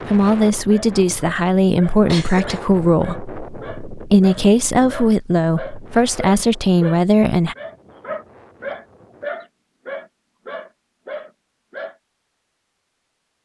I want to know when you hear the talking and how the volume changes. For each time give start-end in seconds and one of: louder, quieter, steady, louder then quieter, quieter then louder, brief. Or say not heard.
0.1-7.5 steady.